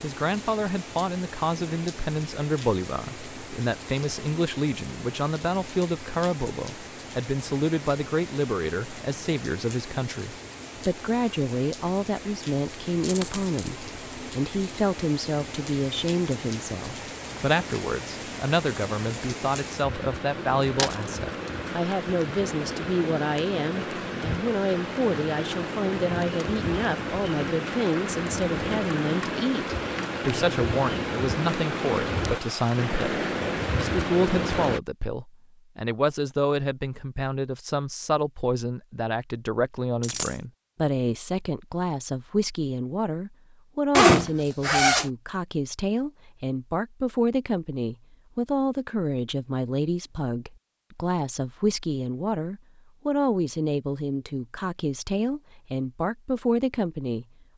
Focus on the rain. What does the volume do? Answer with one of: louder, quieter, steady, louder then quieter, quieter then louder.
louder.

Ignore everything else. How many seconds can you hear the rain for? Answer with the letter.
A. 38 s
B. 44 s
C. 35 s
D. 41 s
C.